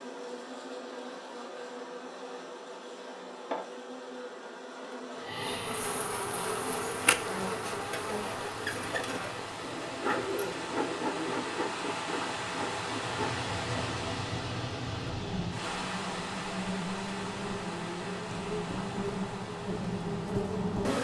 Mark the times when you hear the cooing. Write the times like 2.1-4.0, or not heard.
9.6-11.7.